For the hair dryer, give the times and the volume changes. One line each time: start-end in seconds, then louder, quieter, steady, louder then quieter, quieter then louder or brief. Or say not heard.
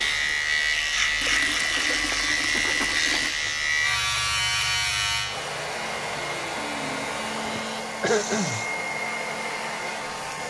0.0-10.4 louder.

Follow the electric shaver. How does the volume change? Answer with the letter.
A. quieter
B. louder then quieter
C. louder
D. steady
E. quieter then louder
A.